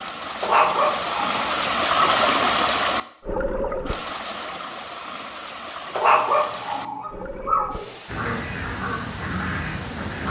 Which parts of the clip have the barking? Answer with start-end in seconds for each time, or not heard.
0.4-2.2, 6.0-8.0.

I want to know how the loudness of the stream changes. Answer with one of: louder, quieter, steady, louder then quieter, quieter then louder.
quieter.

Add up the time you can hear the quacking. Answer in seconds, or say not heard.
2 s.